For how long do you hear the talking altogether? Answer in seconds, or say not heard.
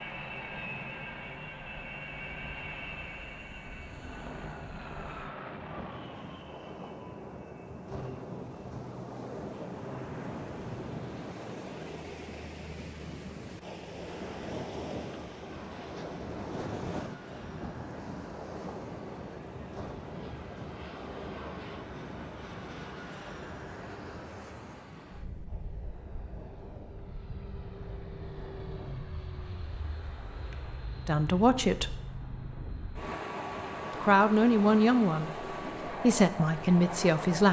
4 s.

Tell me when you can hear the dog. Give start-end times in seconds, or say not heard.
not heard.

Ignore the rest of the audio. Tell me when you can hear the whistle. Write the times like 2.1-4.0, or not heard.
not heard.